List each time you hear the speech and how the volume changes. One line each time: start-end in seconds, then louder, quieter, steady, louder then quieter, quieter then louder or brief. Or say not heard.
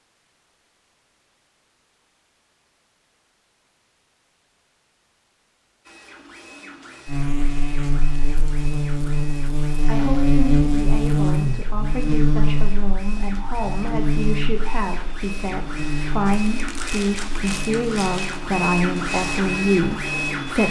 9.8-20.6 louder.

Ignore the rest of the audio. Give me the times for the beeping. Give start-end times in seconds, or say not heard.
not heard.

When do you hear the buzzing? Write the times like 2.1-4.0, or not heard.
7.0-20.6.